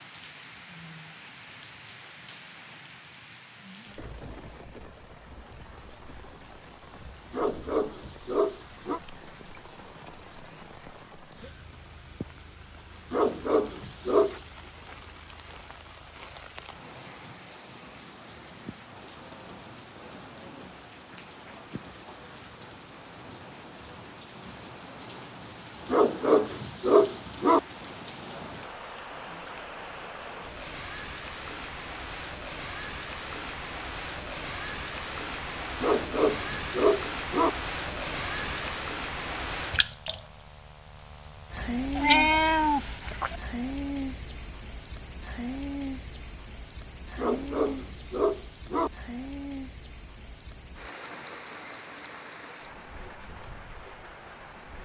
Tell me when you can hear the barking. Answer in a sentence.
You can hear the barking from 7.3 to 9.0 s, from 13.1 to 14.3 s, from 25.9 to 27.6 s, from 35.8 to 37.5 s and from 47.1 to 48.9 s.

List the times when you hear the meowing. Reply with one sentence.
You can hear the meowing from 42.0 to 43.4 s.